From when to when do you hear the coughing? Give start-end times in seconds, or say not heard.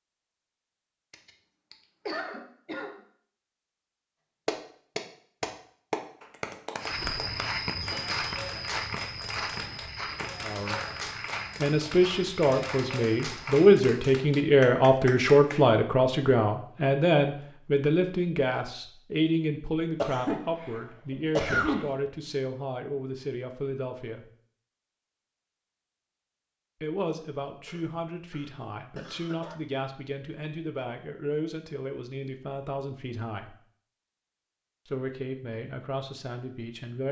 1.1-3.0, 19.9-21.9, 27.6-29.6.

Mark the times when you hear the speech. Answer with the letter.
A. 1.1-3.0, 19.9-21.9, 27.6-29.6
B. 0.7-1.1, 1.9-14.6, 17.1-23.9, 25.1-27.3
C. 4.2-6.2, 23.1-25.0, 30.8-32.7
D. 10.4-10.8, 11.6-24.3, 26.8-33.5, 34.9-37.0
D.